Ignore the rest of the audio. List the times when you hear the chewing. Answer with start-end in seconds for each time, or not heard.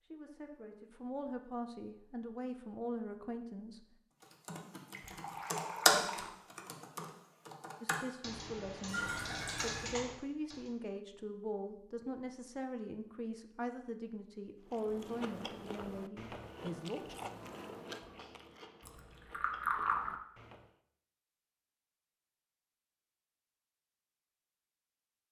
14.7-20.7.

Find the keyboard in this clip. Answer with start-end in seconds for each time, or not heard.
4.5-10.7.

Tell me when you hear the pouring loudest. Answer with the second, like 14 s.
20 s.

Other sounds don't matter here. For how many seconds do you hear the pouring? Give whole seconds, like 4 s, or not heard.
4 s.